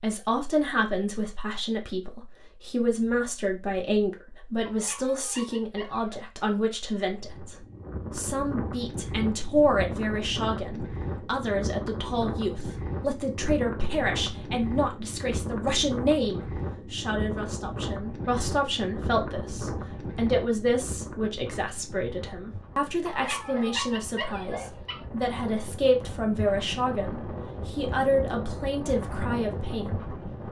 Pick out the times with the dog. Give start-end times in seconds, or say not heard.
4.7-6.2, 23.1-25.0.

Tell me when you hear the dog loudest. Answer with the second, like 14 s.
24 s.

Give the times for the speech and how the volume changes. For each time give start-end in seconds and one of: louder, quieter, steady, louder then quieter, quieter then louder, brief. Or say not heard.
0.0-30.1 steady.